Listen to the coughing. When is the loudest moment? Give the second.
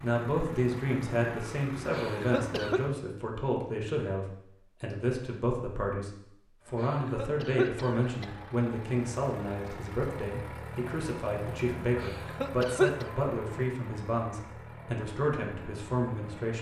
13 s.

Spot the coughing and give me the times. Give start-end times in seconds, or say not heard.
1.9-2.8, 6.8-8.3, 12.0-13.1.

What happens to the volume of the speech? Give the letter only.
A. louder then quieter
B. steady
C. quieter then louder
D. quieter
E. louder
B.